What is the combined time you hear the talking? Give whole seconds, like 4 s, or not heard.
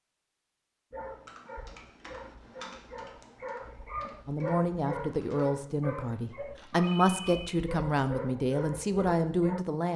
6 s.